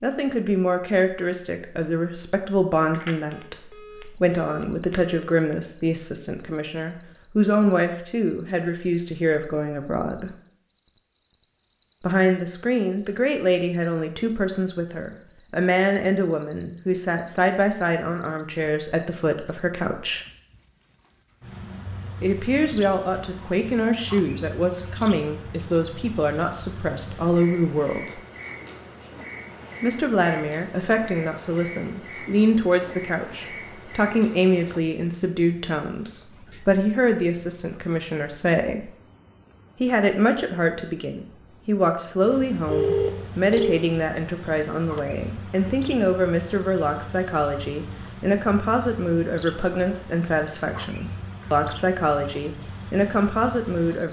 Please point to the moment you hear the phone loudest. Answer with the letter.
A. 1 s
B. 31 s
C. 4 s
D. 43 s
D.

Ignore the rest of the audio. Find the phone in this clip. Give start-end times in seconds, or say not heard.
2.9-5.2, 42.6-43.9.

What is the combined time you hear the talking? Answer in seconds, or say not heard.
48 s.